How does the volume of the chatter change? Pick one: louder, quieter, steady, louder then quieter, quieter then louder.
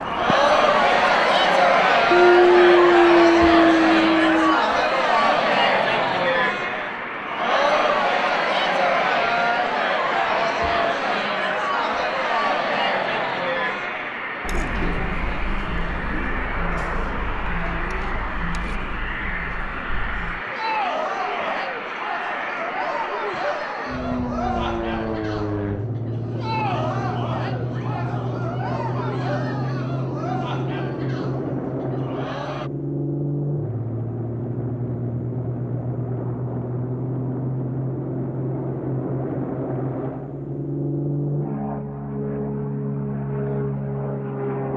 quieter.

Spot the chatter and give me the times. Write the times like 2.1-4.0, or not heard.
0.0-32.7.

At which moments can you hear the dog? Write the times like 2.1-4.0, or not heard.
2.1-4.6.